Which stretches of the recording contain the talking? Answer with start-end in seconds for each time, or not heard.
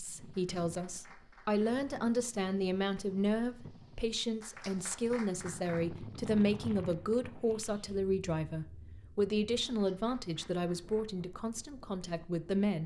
0.0-12.8.